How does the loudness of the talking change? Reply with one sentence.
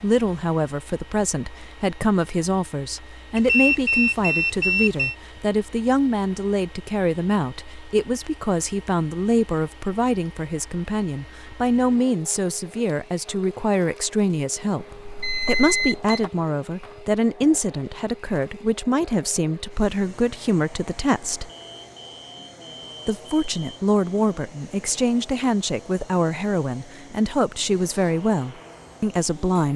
The loudness of the talking stays about the same.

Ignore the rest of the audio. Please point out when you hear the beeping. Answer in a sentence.
The beeping can be heard from 3.4 to 5.2 s, from 14.8 to 16.3 s and from 21.4 to 23.8 s.